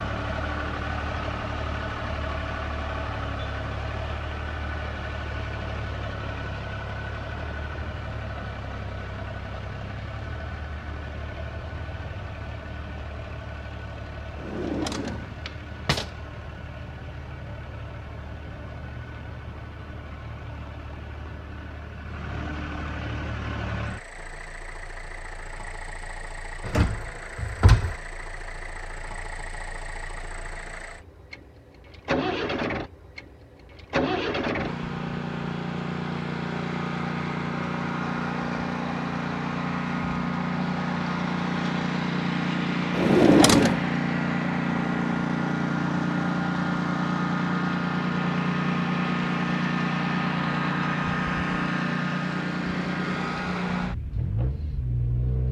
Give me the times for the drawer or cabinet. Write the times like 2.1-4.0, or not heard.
14.3-16.1, 26.6-27.9, 42.9-43.8.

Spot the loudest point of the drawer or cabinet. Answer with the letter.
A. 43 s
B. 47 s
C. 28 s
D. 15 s
A.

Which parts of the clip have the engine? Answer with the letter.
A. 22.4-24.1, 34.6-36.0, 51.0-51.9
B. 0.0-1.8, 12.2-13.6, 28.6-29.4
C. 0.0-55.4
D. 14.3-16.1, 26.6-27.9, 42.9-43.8
C.